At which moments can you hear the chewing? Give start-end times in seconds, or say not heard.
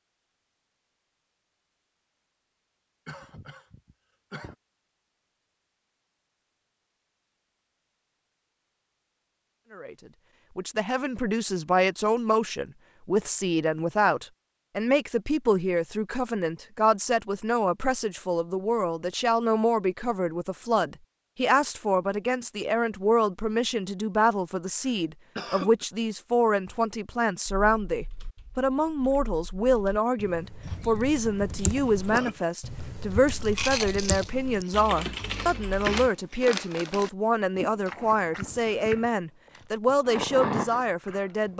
33.1-41.5.